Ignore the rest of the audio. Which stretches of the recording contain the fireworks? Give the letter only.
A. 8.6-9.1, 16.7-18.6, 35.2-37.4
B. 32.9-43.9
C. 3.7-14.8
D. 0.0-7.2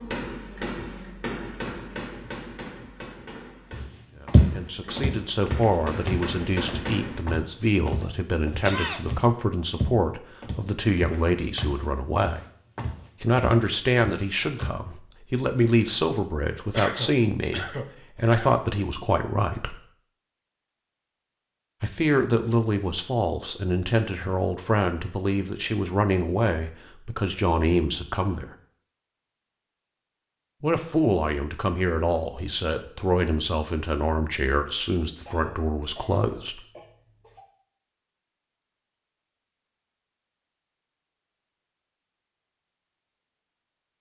D.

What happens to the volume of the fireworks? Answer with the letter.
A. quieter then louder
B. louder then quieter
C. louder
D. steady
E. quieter
A.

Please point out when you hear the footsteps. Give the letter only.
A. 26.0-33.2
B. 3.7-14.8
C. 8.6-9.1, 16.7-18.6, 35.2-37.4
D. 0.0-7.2
B.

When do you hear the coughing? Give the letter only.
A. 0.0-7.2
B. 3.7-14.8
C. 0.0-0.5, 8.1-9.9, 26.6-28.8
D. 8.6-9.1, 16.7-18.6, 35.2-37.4
D.